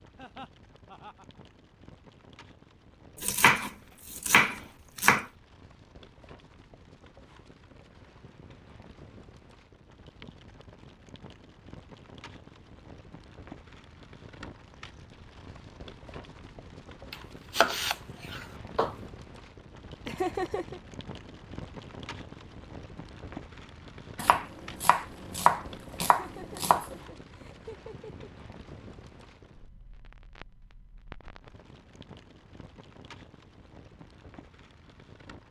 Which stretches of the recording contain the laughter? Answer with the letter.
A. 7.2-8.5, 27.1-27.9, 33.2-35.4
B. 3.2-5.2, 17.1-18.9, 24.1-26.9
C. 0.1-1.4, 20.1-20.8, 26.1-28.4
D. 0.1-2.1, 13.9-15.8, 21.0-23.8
C.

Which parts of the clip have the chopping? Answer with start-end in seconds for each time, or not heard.
3.2-5.2, 17.1-18.9, 24.1-26.9.